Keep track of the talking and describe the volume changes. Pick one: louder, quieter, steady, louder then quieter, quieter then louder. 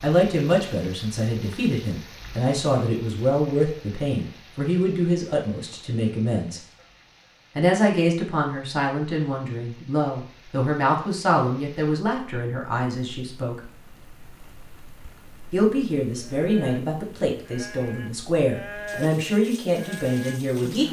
steady.